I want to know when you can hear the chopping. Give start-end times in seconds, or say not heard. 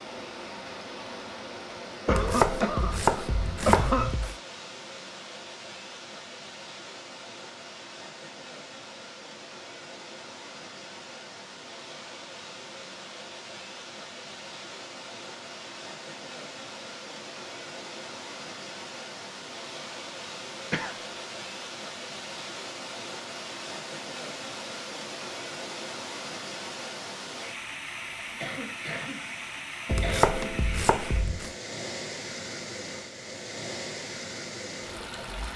2.0-4.3, 29.9-31.6.